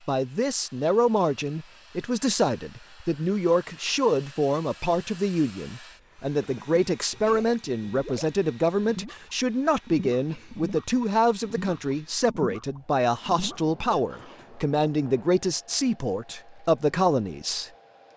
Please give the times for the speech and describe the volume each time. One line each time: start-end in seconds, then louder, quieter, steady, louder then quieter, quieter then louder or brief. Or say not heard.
0.1-17.7 steady.